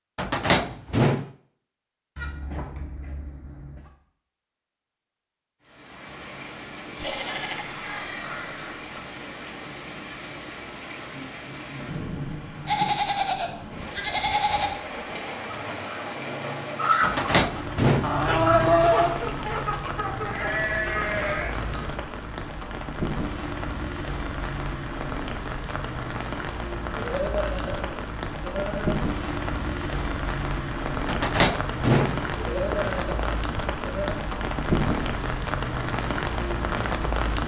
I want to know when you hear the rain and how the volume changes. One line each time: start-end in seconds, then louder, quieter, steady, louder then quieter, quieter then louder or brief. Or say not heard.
5.6-37.4 louder.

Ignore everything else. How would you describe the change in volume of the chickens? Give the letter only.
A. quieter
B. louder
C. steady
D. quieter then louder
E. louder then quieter
E.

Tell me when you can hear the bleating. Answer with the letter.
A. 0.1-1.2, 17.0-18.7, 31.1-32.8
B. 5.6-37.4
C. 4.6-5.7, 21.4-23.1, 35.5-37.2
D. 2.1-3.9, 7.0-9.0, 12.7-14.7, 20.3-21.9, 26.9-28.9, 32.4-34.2
D.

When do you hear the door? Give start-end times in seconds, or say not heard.
0.1-1.2, 17.0-18.7, 31.1-32.8.